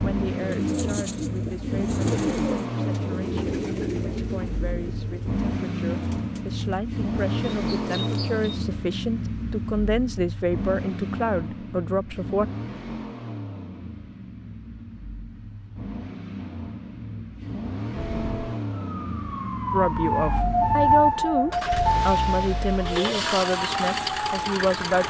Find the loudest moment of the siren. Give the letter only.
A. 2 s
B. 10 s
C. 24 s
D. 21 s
D.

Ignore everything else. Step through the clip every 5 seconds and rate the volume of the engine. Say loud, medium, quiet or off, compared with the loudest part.
loud, loud, medium, medium, loud.